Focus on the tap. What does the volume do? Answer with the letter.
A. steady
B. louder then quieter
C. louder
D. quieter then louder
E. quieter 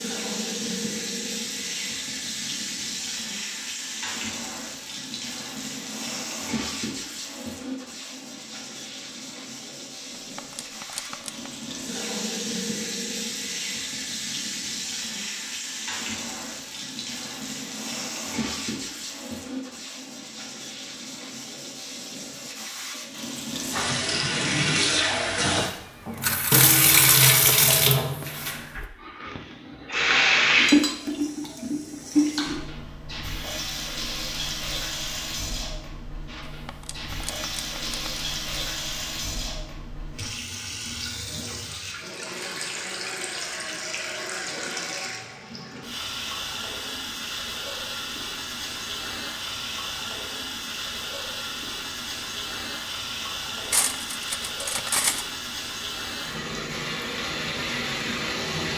B.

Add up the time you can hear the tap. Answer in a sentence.
You can hear the tap for 59 seconds altogether.